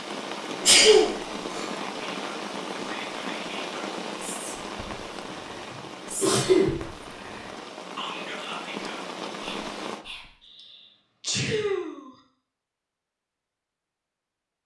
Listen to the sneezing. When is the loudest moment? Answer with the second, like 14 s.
1 s.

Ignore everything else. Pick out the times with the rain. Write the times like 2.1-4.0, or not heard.
0.0-10.1.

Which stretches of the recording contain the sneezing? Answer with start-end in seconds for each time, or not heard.
0.7-1.6, 5.2-6.8, 10.6-12.1.